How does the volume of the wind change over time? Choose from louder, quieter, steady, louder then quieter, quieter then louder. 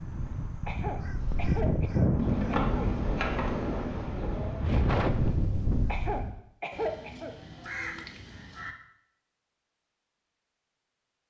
louder.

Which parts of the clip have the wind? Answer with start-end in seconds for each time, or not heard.
0.0-6.3.